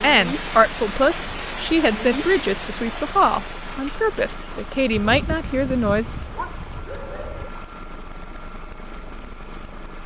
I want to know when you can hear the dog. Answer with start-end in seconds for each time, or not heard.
4.9-7.5.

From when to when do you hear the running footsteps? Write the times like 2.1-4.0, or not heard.
not heard.